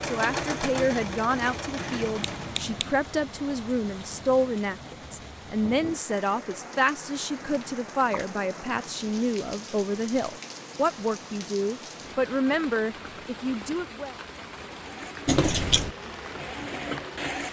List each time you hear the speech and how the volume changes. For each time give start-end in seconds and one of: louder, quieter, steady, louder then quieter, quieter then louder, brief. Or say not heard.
0.0-14.2 steady.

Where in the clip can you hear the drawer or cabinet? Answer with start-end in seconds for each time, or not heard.
not heard.